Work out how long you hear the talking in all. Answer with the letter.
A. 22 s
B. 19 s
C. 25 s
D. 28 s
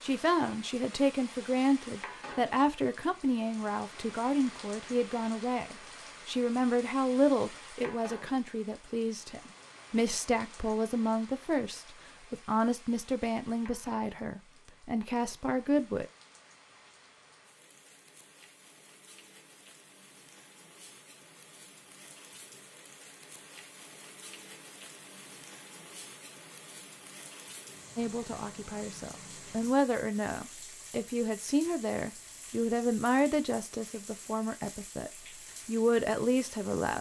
C.